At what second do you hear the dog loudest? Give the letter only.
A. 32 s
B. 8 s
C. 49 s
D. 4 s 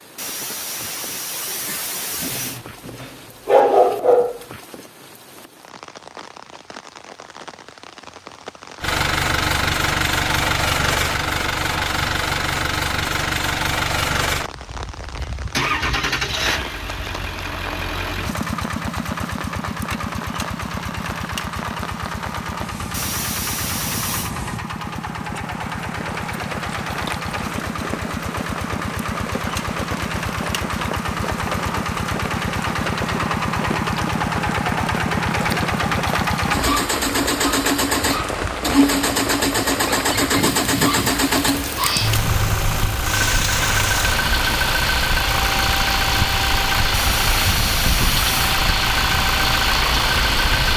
D.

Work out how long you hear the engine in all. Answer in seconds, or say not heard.
42 s.